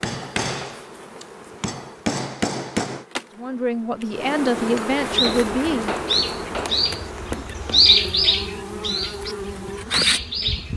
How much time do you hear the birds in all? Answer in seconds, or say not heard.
6 s.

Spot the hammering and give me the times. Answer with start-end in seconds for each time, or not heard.
0.0-3.0, 4.6-8.0.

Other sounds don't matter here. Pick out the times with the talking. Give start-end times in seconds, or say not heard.
3.4-6.0.